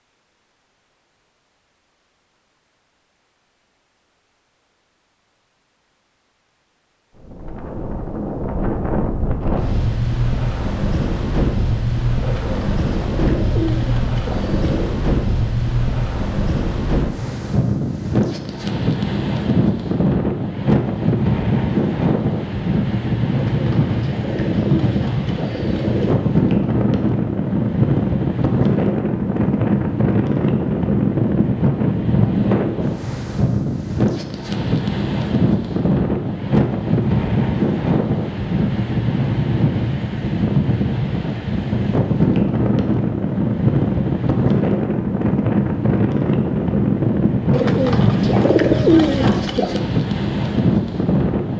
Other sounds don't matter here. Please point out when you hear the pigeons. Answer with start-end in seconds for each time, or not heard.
12.2-14.9, 23.3-26.1, 47.5-49.9.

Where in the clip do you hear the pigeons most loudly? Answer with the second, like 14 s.
49 s.